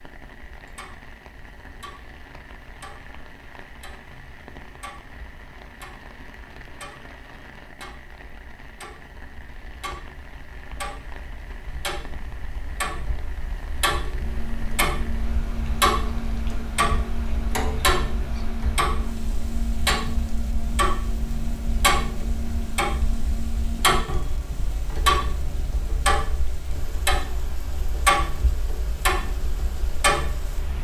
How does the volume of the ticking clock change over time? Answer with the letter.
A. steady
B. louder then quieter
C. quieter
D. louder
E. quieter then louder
D.